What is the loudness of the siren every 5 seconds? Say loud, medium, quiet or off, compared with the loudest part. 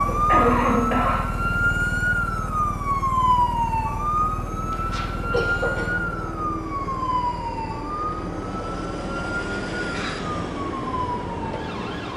loud, medium, medium.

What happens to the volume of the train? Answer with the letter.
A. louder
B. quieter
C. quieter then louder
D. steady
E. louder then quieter
A.